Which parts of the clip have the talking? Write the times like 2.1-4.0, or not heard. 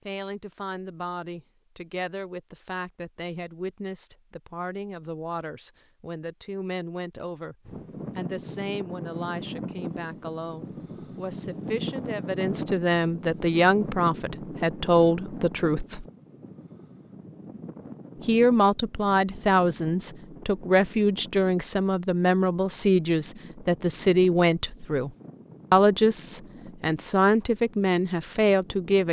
0.1-7.5, 8.2-16.1, 18.2-25.1, 25.7-29.0.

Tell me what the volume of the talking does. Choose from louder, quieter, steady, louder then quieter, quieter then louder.
louder.